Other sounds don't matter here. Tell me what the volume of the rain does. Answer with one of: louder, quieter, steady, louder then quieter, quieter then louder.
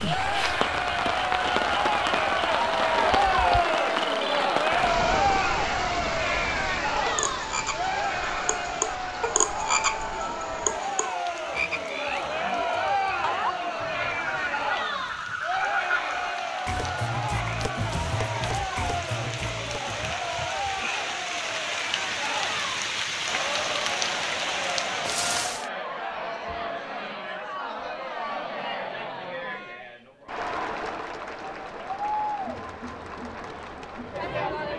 quieter then louder.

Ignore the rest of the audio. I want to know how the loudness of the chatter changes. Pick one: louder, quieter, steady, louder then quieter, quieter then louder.
quieter.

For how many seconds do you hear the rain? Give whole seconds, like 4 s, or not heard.
26 s.